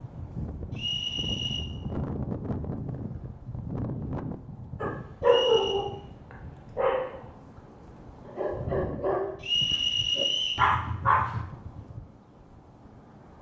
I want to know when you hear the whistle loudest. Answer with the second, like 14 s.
10 s.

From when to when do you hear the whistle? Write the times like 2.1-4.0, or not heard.
0.7-1.6, 5.2-5.8, 9.4-10.7.